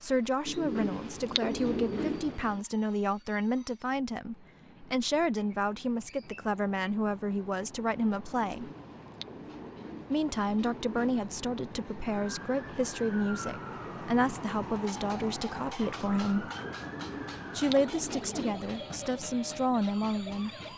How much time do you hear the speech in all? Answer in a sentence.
You can hear the speech for 18 seconds altogether.